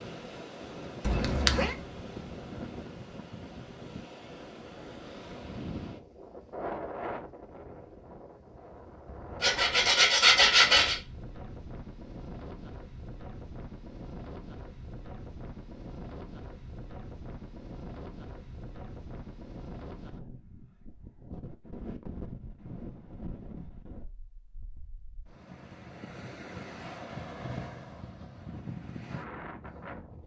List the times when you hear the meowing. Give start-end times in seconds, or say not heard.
1.0-1.8.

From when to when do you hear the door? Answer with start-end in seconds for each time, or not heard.
not heard.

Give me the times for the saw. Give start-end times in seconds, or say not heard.
9.4-10.9.